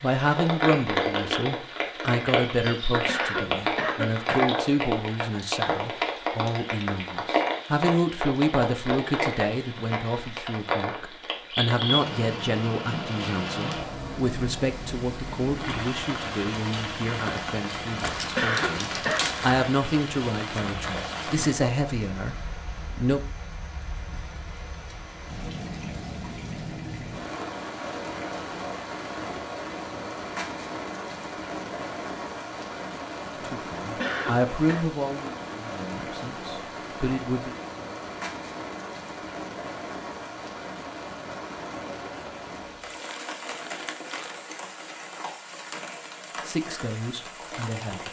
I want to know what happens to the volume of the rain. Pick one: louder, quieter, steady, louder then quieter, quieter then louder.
quieter.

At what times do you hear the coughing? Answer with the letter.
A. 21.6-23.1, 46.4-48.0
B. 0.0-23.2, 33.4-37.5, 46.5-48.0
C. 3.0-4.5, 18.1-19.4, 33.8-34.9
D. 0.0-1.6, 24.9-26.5
C.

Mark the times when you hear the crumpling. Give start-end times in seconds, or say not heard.
17.9-19.6, 42.8-44.5.